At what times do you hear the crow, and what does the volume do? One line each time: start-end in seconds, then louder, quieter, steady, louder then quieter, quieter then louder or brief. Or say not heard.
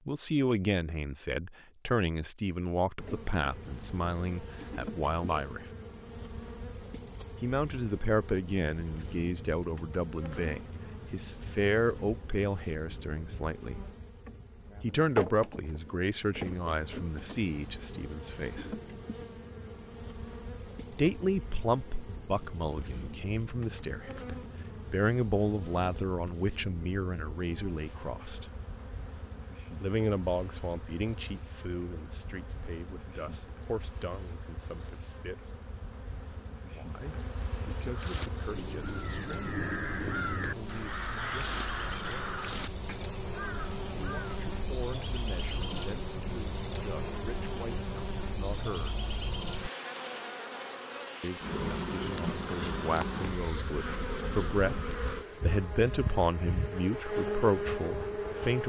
37.9-44.3 louder then quieter.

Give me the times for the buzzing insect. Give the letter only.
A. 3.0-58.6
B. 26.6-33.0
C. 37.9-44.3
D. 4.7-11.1
A.